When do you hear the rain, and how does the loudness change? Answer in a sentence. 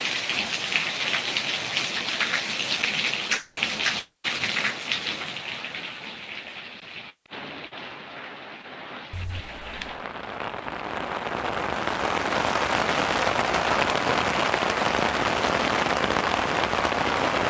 You can hear the rain from 0.0 to 17.4 s, getting quieter then louder.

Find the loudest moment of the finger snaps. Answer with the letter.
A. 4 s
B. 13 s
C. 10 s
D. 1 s
A.